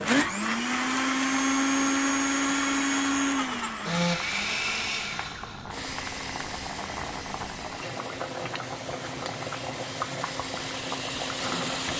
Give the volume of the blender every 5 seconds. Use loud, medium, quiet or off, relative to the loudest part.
loud, quiet, medium.